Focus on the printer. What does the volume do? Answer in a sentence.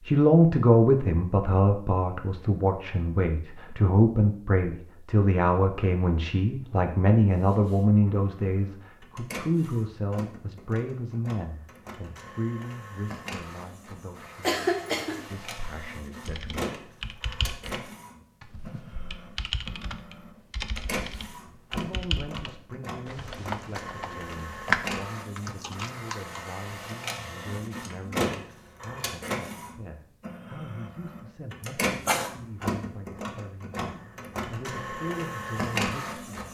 The volume of the printer goes up.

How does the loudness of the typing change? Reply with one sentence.
The loudness of the typing goes up.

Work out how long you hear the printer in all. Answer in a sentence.
The printer can be heard for 29 seconds in total.